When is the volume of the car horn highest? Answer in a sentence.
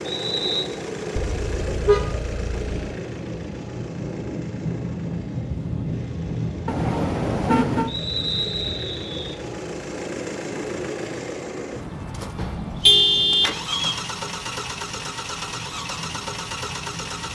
The volume of the car horn peaks at 13 seconds.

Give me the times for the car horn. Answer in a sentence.
The car horn can be heard from 1.1 to 2.7 s, from 6.7 to 7.9 s and from 12.3 to 13.6 s.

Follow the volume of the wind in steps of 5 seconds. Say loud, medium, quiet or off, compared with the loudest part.
loud, loud, medium, medium.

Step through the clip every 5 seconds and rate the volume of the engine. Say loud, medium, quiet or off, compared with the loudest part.
loud, medium, loud, loud.